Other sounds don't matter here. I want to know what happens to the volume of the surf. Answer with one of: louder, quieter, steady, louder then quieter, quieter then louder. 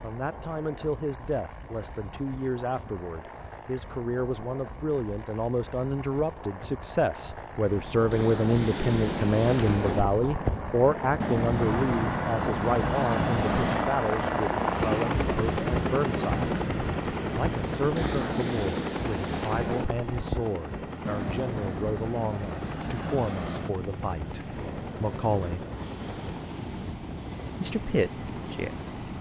quieter.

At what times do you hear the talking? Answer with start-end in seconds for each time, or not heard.
0.0-16.4, 17.3-25.6, 27.6-28.9.